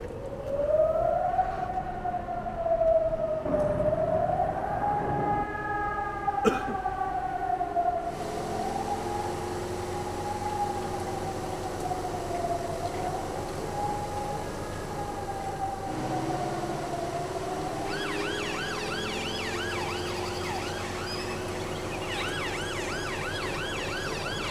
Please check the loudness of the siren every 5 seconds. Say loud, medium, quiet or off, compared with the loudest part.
loud, loud, medium, medium, medium.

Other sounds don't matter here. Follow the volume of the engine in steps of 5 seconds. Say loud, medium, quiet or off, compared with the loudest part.
medium, loud, loud, loud, loud.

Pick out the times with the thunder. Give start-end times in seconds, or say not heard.
3.5-5.5.